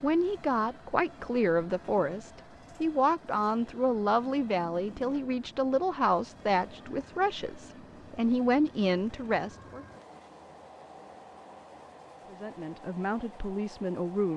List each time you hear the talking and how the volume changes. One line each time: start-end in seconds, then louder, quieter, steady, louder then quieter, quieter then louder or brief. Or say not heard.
0.0-9.8 steady
12.2-14.3 brief.